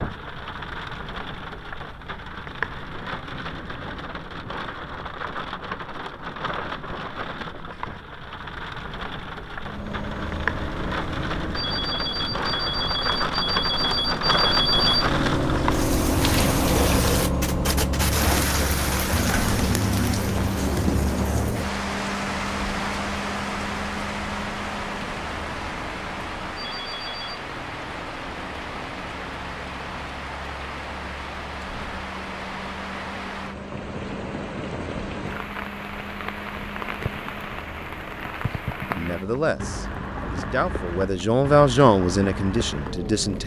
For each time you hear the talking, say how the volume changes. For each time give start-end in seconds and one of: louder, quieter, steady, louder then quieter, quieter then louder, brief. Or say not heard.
39.0-43.4 louder then quieter.